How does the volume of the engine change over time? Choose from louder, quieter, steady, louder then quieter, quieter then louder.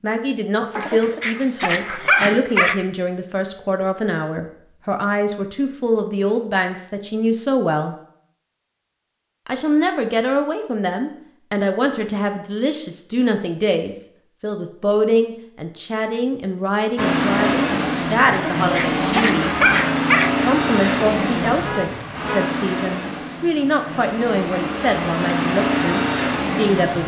quieter then louder.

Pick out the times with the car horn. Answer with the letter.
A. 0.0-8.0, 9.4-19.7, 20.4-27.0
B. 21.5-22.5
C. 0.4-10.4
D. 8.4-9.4
B.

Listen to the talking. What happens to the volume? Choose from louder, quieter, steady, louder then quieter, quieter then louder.
steady.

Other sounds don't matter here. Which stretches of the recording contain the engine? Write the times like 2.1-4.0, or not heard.
16.9-27.0.